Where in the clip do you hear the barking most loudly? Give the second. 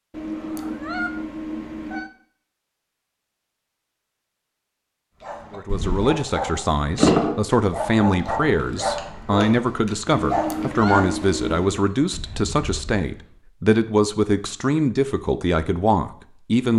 7 s.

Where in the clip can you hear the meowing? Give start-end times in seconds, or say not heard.
0.1-2.1, 10.1-11.8.